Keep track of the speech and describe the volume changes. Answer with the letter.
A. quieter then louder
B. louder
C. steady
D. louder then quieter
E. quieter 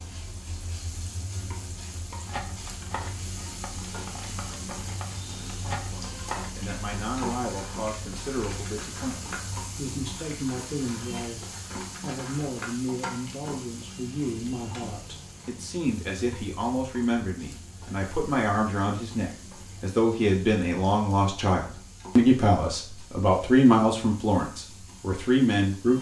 B.